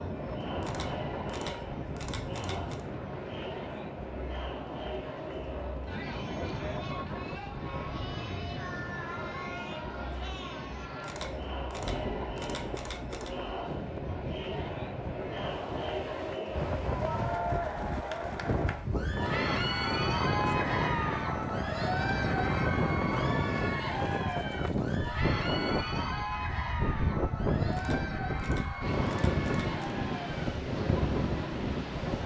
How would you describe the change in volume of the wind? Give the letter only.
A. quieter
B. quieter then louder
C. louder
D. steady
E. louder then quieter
C.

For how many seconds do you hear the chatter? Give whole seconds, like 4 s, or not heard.
32 s.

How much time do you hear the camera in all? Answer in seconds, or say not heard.
7 s.